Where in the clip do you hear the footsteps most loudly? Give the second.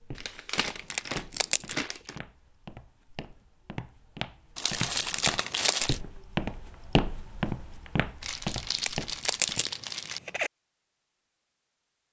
7 s.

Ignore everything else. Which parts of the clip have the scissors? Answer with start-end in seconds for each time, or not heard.
0.9-1.8, 5.0-5.8, 8.6-10.5.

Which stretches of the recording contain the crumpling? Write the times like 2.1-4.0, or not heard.
0.1-2.2, 4.5-6.0, 8.2-10.2.